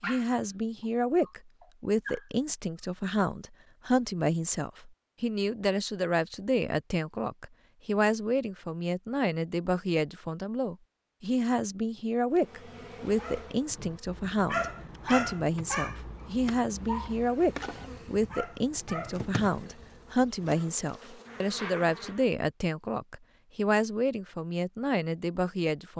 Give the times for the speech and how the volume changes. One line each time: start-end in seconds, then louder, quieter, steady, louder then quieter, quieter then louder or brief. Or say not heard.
0.0-25.9 steady.